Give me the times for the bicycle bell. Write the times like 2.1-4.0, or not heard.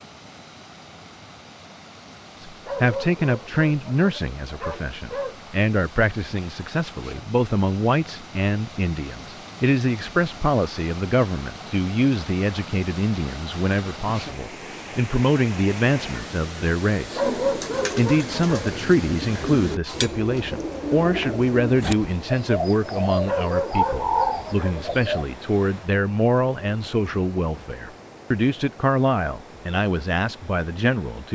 not heard.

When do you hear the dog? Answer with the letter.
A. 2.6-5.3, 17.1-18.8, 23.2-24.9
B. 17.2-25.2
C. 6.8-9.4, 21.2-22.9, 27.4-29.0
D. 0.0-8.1
A.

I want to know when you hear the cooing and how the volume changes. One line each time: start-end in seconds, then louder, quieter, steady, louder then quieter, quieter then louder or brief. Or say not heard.
17.2-25.2 louder.